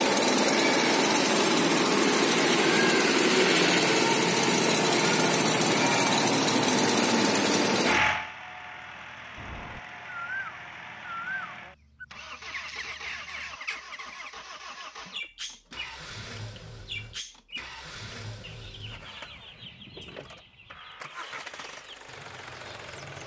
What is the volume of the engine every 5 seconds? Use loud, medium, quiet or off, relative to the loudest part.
loud, loud, quiet, quiet, quiet.